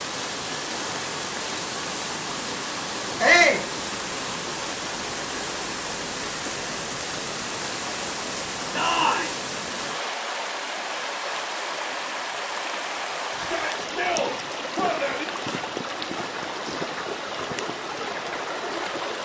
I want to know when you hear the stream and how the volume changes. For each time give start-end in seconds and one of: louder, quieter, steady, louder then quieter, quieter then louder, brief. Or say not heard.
0.0-19.1 steady.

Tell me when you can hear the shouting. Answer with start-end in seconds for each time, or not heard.
3.2-3.6, 8.8-9.3, 13.3-15.2.